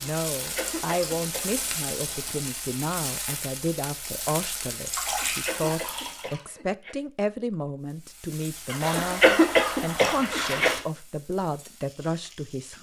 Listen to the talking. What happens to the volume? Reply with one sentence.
The loudness of the talking stays about the same.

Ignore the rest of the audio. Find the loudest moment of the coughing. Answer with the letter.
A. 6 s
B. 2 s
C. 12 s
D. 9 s
D.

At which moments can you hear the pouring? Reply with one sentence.
You can hear the pouring from 0.5 to 2.4 s, from 4.8 to 6.4 s and from 8.8 to 10.8 s.